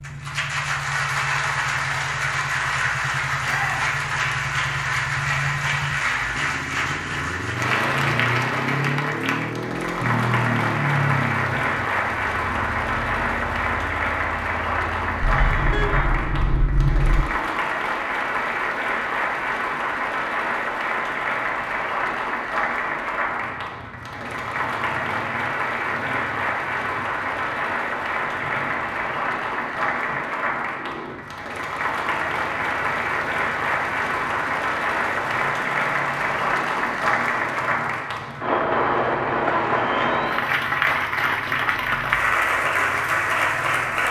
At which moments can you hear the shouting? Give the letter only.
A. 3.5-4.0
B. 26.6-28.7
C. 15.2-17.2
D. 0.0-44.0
A.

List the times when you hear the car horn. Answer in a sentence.
You can hear the car horn from 15.2 to 17.2 s.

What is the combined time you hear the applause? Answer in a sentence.
You can hear the applause for 44 seconds altogether.